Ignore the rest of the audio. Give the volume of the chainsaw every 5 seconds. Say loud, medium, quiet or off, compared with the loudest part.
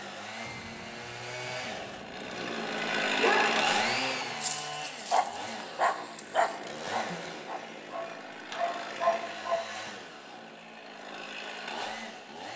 loud, medium, medium.